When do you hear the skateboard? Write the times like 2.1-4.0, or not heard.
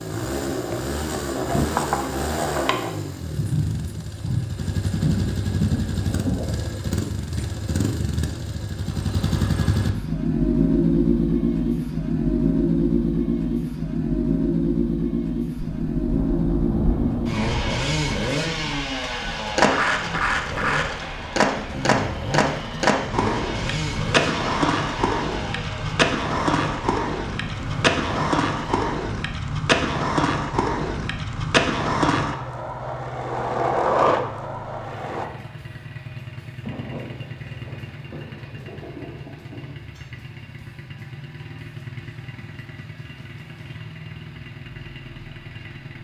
0.2-2.9, 19.5-35.2.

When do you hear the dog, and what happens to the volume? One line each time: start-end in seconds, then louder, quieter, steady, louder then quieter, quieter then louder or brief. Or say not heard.
not heard.